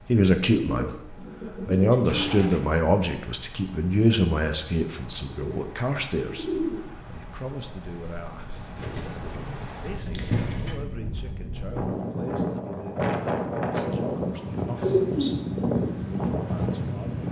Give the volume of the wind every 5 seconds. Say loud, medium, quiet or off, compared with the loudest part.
quiet, quiet, loud, loud.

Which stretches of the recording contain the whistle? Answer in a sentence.
You can't hear the whistle here.